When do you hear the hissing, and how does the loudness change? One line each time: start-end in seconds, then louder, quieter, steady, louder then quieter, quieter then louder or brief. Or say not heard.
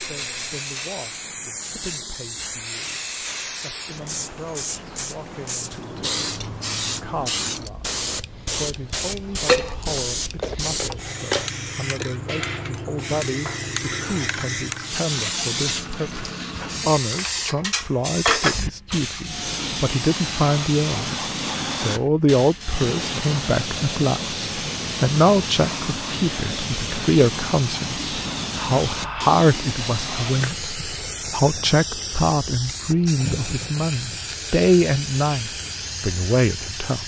0.0-37.0 steady.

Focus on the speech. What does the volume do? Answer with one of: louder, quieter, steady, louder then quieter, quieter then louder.
louder.